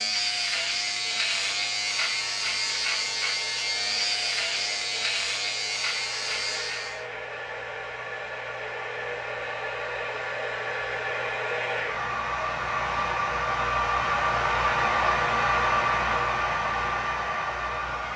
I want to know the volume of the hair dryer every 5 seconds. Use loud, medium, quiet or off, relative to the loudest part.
quiet, medium, loud, loud.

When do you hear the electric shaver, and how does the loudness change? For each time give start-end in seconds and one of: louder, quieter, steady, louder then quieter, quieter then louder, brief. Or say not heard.
0.0-7.0 steady.